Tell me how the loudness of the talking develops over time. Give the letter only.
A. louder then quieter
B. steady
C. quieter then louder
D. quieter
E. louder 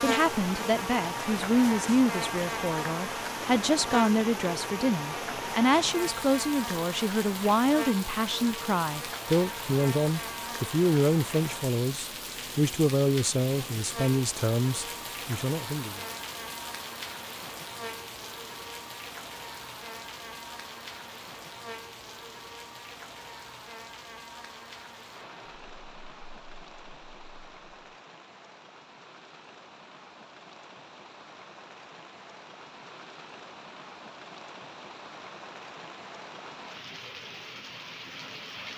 B.